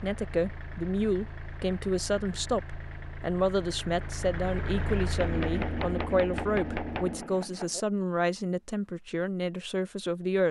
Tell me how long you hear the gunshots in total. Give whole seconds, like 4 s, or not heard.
3 s.